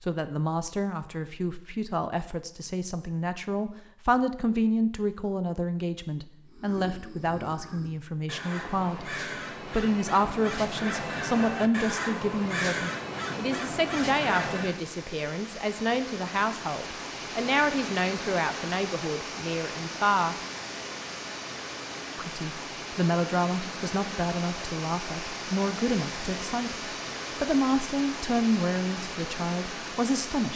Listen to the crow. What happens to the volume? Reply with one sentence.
The volume of the crow goes up.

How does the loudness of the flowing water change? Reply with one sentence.
The volume of the flowing water stays about the same.